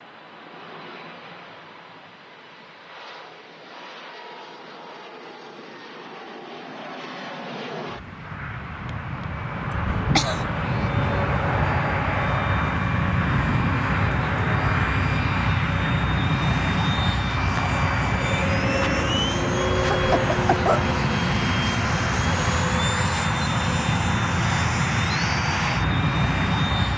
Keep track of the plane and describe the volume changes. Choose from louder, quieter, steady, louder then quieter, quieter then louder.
louder.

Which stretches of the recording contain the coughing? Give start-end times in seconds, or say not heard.
9.7-10.4, 19.9-20.9.